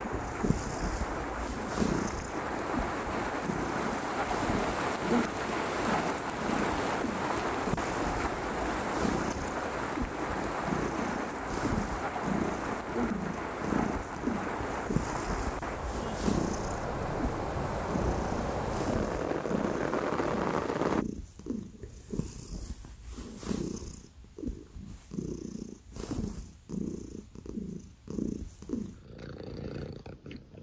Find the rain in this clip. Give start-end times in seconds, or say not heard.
0.0-21.1.